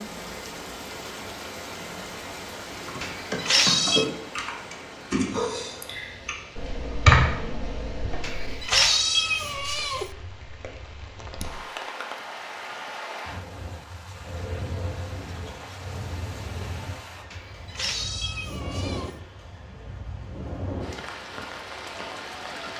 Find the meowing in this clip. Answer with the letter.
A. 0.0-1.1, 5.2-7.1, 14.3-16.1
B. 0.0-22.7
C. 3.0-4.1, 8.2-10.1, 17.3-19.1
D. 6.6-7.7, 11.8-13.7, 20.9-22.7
C.